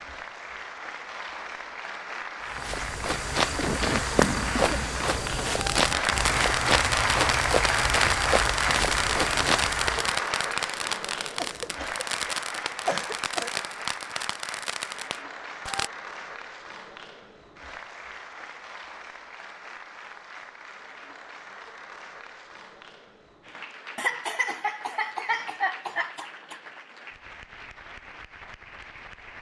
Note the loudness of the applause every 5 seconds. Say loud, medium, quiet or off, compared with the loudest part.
medium, loud, medium, quiet, quiet, quiet.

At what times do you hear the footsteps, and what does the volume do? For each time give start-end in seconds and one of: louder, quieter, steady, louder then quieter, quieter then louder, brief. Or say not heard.
2.5-10.2 steady.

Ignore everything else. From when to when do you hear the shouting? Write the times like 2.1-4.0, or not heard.
not heard.